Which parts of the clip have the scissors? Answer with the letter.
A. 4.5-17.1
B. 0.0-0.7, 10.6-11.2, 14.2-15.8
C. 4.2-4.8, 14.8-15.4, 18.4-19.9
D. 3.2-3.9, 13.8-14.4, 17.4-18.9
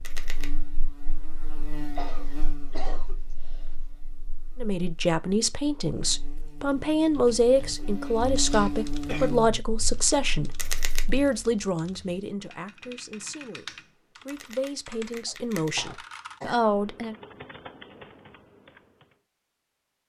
B.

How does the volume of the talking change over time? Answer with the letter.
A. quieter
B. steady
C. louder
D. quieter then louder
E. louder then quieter
D.